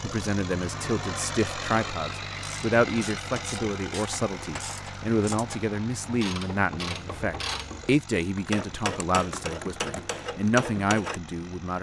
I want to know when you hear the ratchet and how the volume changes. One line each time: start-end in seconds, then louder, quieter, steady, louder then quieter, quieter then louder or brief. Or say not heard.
2.4-11.2 louder.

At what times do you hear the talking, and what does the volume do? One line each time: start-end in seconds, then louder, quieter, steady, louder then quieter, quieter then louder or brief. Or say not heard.
0.0-11.7 steady.